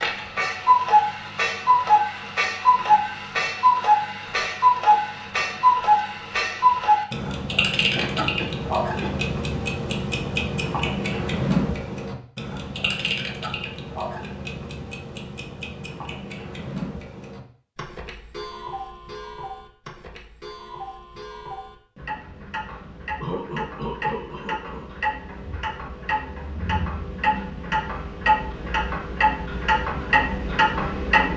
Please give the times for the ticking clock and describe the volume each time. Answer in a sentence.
The ticking clock can be heard from 0.0 to 31.3 s, getting quieter then louder.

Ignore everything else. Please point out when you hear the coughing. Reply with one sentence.
The coughing can be heard from 8.0 to 9.2 s and from 23.2 to 24.9 s.